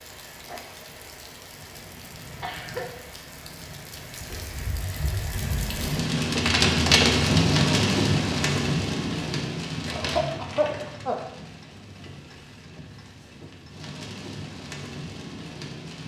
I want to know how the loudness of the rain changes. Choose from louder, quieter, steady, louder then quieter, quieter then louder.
louder then quieter.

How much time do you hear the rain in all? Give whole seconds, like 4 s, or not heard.
16 s.